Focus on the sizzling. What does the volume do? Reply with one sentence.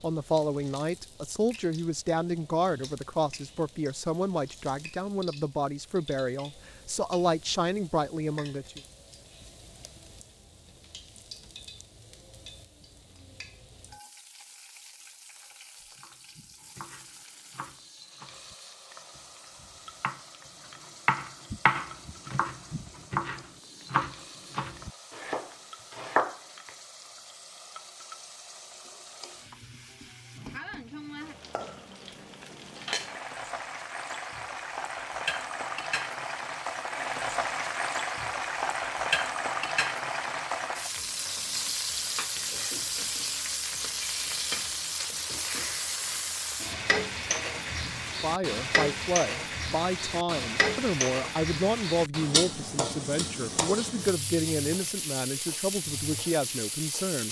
The volume of the sizzling goes up.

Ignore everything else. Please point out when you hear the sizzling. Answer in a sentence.
You can hear the sizzling from 0.0 to 57.2 s.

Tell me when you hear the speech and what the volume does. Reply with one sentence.
You can hear the speech from 0.0 to 8.8 s, at a steady volume; and from 48.2 to 57.2 s, at a steady volume.